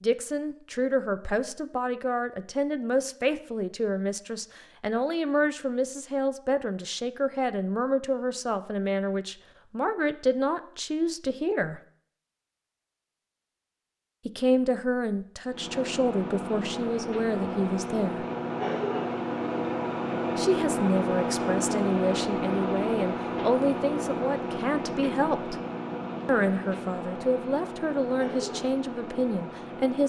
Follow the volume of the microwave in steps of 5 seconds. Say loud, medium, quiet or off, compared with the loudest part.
off, off, off, loud, loud, medium.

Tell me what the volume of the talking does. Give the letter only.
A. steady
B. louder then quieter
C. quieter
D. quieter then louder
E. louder
A.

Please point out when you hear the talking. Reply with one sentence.
You can hear the talking from 0.0 to 11.8 s, from 14.2 to 18.2 s, from 20.4 to 25.6 s and from 26.2 to 30.0 s.